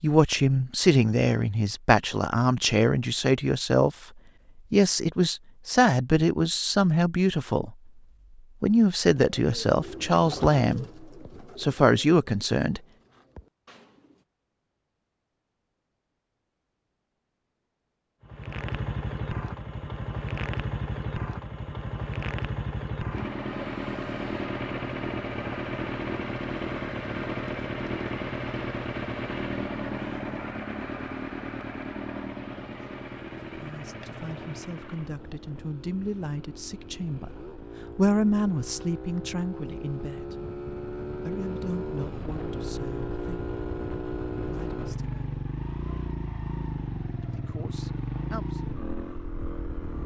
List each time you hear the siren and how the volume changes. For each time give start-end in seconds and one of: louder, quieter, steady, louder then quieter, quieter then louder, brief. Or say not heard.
not heard.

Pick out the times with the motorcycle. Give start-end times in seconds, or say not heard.
18.2-50.0.